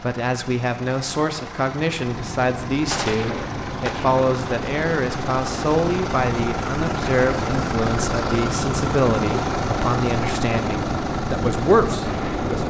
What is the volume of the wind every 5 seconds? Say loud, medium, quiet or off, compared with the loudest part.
medium, loud, loud.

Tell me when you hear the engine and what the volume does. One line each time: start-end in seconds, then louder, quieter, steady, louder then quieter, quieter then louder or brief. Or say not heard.
0.0-12.6 louder.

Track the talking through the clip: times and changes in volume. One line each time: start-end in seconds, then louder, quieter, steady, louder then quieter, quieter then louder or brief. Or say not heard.
0.0-12.6 steady.